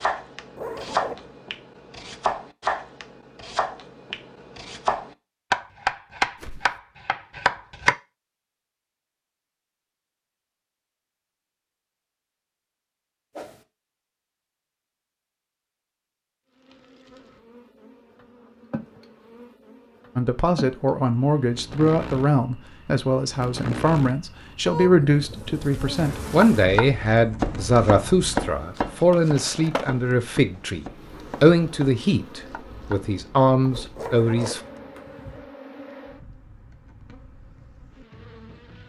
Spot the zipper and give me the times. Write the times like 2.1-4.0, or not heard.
0.6-1.3, 34.0-35.5.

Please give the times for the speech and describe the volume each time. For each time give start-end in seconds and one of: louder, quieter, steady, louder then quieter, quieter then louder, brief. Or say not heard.
20.1-34.6 steady.